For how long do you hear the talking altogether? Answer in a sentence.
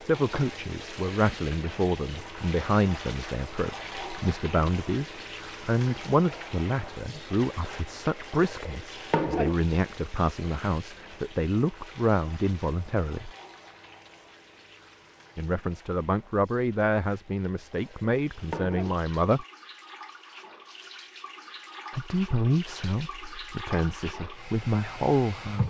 The talking can be heard for 21 seconds in total.